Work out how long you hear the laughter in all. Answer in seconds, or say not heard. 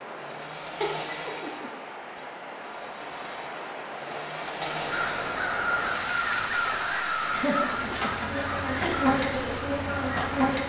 3 s.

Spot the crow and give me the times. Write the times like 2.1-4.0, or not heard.
4.7-10.5.